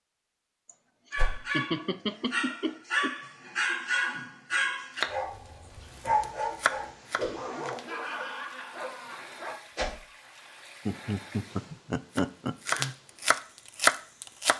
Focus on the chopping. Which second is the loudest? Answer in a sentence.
The loudest moment of the chopping is at 14 seconds.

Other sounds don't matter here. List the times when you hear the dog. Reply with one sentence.
You can hear the dog from 1.1 to 9.6 s.